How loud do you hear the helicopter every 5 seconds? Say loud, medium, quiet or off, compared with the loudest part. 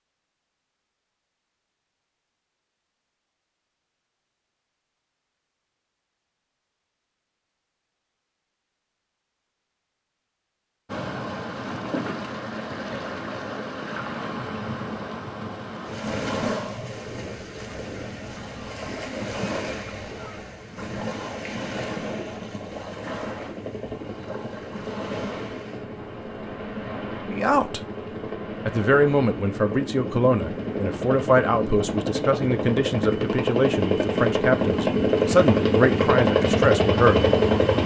off, off, off, off, quiet, quiet, medium, loud.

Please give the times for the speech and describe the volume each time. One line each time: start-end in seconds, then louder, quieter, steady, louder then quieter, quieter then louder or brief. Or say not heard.
27.2-27.8 brief
28.6-37.3 steady.